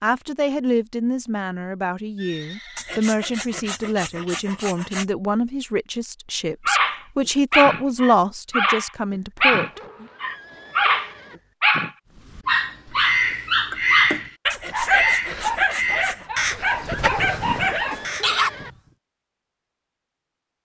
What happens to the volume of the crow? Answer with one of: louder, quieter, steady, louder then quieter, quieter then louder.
quieter.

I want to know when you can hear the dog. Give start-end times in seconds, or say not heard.
6.7-18.5.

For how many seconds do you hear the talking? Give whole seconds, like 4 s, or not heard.
10 s.